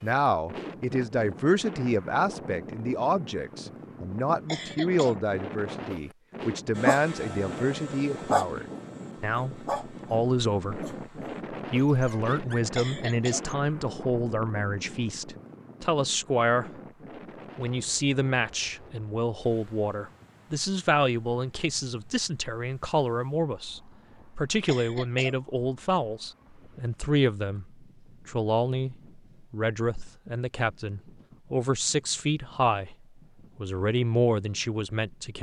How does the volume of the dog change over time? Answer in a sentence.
The loudness of the dog goes up, then down.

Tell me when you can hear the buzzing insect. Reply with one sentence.
The buzzing insect can't be heard in this clip.